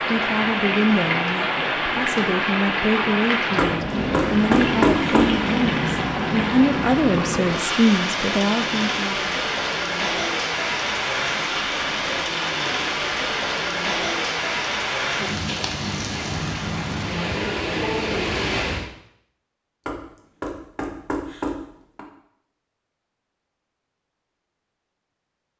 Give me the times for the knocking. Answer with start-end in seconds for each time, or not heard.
3.5-5.3, 19.9-22.1.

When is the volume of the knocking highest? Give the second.
5 s.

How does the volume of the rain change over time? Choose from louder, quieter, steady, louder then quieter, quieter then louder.
steady.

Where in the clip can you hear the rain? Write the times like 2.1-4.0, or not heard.
0.0-18.9.